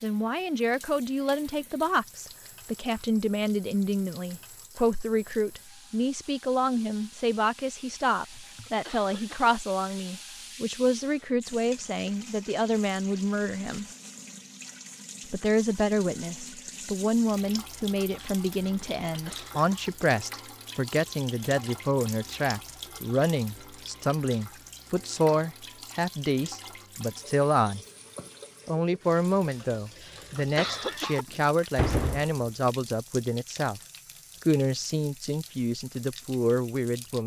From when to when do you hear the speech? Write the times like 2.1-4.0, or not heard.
0.0-13.8, 15.3-27.8, 28.6-33.8, 34.4-37.2.